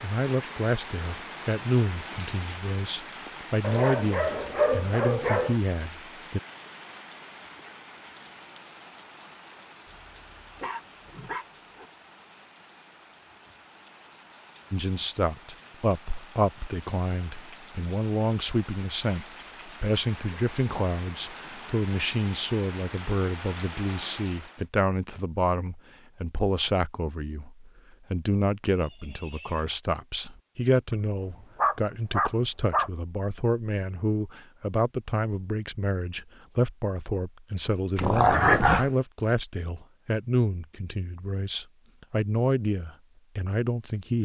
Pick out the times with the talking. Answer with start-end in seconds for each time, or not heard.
0.0-6.4, 14.7-44.2.